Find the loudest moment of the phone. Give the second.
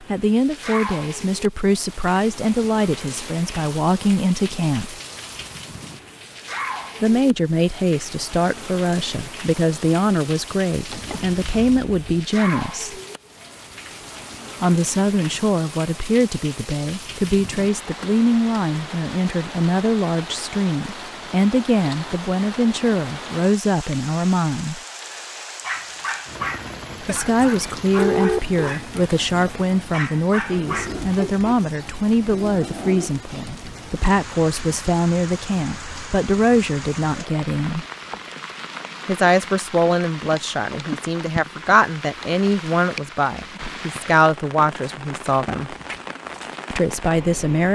28 s.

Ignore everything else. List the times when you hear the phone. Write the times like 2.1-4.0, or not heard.
10.8-12.2, 27.9-28.6.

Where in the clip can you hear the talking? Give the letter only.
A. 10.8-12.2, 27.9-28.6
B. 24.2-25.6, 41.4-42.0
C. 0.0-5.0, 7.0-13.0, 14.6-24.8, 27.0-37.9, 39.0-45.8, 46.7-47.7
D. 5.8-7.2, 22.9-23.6
C.